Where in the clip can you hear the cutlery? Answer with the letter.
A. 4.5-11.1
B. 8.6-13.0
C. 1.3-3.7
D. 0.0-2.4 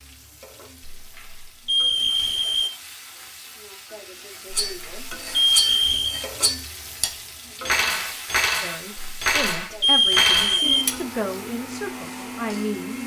A.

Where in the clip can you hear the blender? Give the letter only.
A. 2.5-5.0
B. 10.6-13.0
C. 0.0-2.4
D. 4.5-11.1
B.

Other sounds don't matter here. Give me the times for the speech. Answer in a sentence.
The speech can be heard from 8.6 to 13.0 s.